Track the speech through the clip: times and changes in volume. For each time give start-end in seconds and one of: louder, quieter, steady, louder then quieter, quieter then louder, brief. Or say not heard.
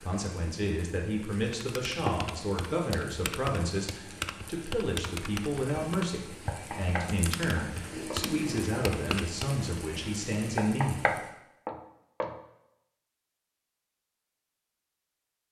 0.0-11.2 steady.